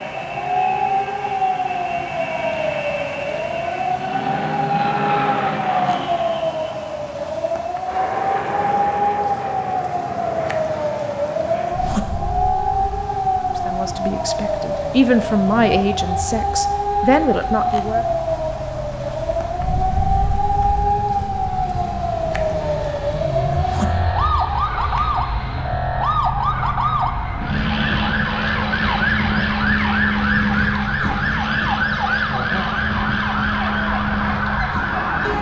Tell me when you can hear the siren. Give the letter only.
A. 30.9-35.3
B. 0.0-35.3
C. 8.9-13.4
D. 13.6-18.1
B.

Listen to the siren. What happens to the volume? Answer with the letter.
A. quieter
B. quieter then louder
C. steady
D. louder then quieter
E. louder
C.